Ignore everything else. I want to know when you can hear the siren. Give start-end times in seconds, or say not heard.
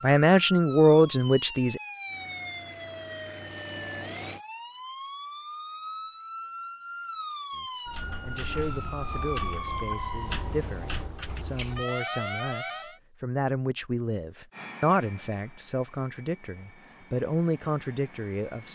0.0-13.0.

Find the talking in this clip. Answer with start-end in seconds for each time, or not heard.
0.0-1.8, 7.5-18.6.